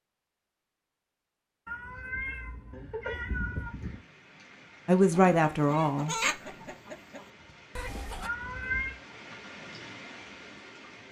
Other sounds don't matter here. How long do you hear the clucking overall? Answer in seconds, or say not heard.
3 s.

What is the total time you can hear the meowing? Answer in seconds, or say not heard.
3 s.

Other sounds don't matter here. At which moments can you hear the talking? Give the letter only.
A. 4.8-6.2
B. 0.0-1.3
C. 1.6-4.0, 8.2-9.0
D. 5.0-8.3
A.